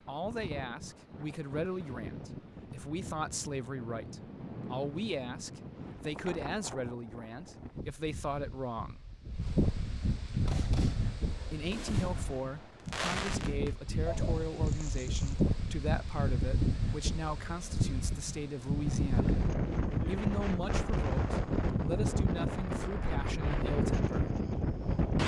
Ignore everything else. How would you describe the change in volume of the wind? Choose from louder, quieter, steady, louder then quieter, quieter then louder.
louder.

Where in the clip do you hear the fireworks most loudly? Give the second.
13 s.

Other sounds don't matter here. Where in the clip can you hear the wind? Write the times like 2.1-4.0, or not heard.
0.0-25.2.